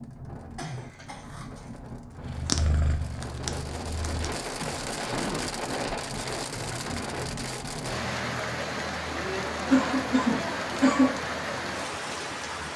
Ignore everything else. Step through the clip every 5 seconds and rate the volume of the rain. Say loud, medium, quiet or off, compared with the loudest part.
medium, loud, loud.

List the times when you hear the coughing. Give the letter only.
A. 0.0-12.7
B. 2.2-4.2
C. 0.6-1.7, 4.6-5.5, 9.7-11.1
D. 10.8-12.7
C.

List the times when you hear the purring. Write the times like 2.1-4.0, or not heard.
2.2-4.2.